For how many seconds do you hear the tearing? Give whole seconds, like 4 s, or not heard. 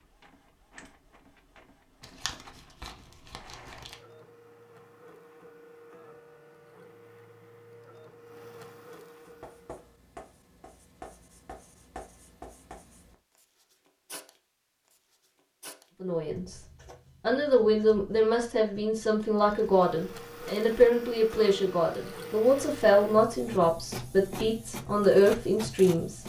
2 s.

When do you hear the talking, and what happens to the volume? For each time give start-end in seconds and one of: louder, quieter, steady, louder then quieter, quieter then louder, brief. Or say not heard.
16.0-16.6 brief
17.2-26.2 steady.